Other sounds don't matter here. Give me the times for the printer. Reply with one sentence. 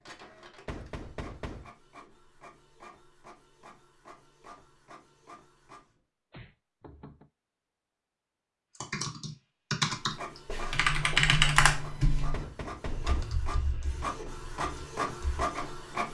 The printer can be heard from 0.0 to 6.0 s and from 9.9 to 16.1 s.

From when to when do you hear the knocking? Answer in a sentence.
The knocking can be heard from 0.7 to 1.7 s, from 5.8 to 7.3 s and from 12.3 to 13.4 s.